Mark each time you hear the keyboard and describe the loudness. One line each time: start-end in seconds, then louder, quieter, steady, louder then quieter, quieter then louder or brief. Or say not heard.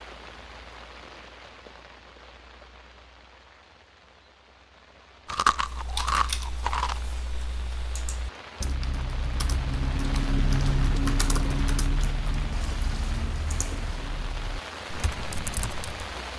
5.5-16.1 louder then quieter.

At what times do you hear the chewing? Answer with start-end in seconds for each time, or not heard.
5.2-7.0.